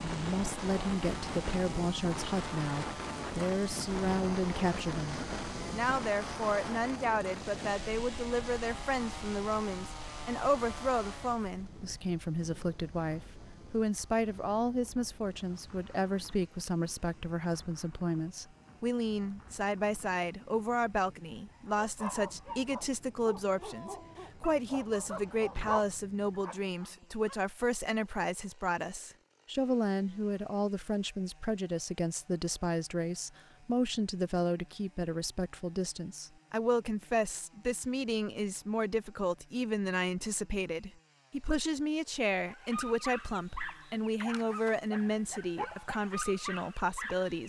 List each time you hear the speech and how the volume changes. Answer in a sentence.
The speech can be heard from 0.0 to 47.4 s, at a steady volume.